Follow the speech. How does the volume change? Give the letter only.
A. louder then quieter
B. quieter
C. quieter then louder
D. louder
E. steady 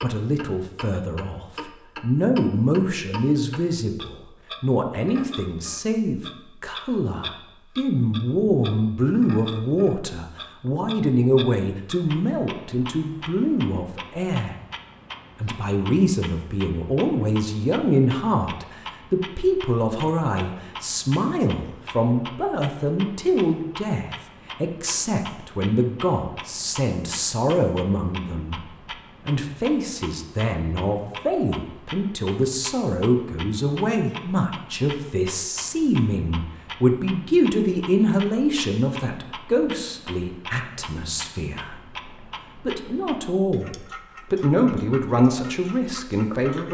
E.